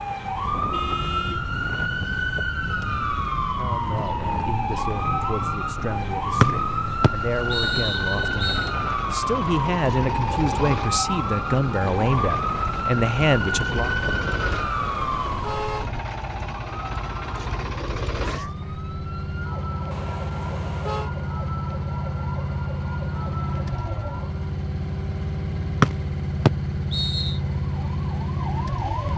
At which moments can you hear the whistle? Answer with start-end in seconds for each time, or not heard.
6.4-8.7, 25.8-27.4.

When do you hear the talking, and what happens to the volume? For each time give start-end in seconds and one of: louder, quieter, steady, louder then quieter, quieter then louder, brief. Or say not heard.
3.5-13.9 louder.